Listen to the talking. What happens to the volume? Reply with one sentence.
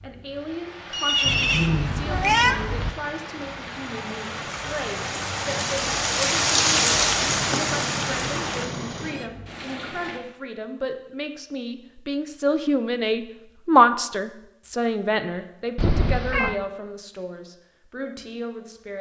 The loudness of the talking goes up, then down.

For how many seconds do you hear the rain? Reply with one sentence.
The rain can be heard for 10 seconds in total.